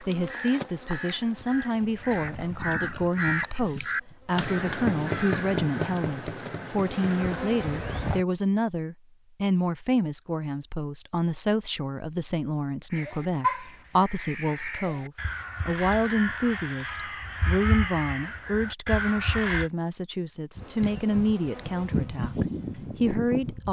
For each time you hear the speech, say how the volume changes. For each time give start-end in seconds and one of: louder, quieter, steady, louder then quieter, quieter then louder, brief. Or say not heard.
0.0-23.6 steady.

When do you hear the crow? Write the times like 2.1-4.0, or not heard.
0.0-8.2, 12.9-19.7.